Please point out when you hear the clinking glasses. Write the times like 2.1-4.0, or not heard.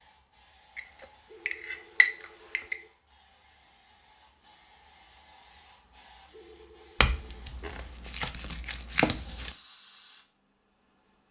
0.8-2.8, 7.0-9.6.